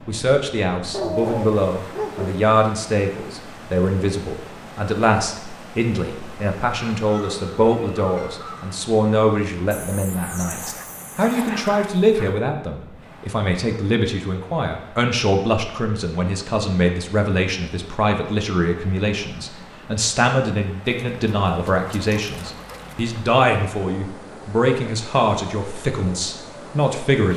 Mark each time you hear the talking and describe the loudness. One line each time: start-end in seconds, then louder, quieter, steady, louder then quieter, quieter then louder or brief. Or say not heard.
0.1-27.3 steady.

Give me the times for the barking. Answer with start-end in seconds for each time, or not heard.
0.9-2.5, 9.7-12.3, 20.8-23.1.